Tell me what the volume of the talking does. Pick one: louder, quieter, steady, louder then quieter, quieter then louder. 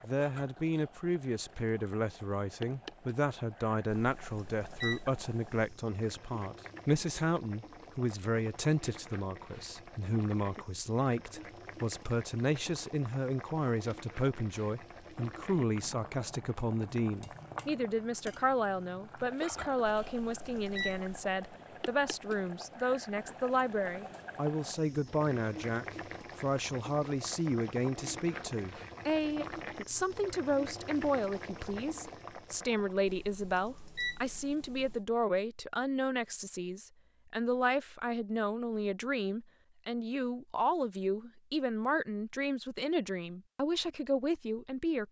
steady.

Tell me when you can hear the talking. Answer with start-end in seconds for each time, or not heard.
0.0-45.0.